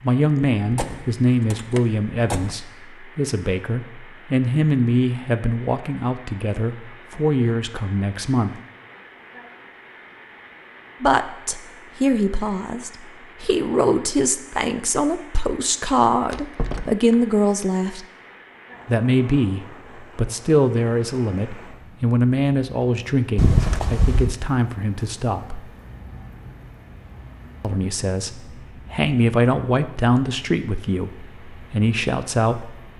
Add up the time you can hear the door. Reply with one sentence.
The door can be heard for 4 seconds in total.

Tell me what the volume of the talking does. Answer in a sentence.
The loudness of the talking stays about the same.